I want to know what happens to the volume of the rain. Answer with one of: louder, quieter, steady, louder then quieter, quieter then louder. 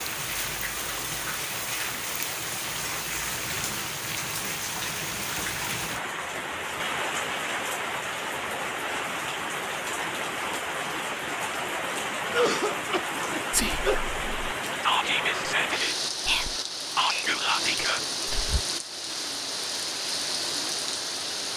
steady.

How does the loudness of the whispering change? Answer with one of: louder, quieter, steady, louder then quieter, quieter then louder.
louder.